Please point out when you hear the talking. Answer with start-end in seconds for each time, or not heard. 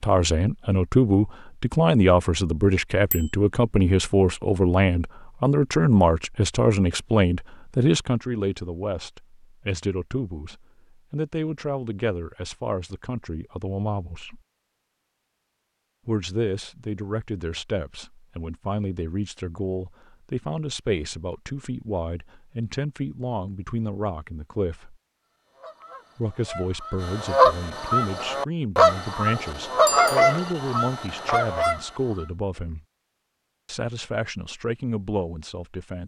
0.0-14.4, 16.1-24.9, 26.1-32.9, 33.6-36.0.